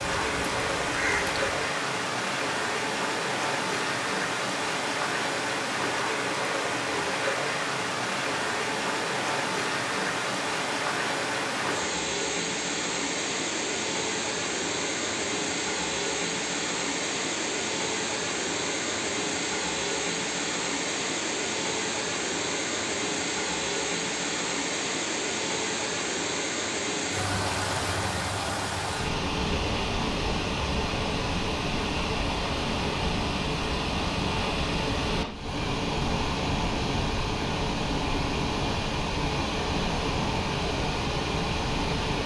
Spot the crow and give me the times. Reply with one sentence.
You can hear the crow from 0.0 to 1.5 s.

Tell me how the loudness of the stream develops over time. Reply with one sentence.
The volume of the stream stays about the same.